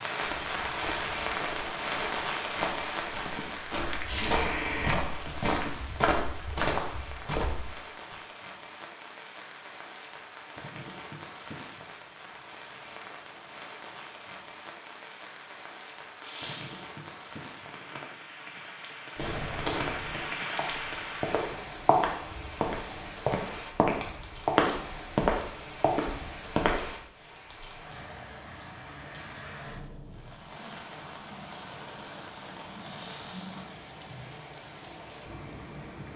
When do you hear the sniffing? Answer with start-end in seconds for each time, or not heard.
4.0-5.0, 16.2-16.9, 32.8-33.6.